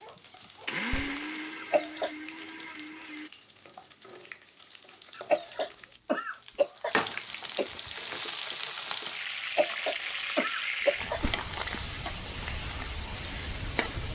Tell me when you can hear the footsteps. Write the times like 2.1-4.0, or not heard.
not heard.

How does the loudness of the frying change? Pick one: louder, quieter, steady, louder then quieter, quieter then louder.
louder.